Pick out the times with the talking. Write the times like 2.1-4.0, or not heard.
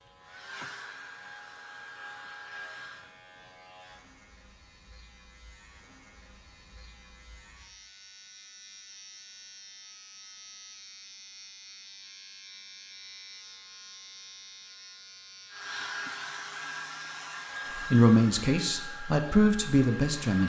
17.8-20.4.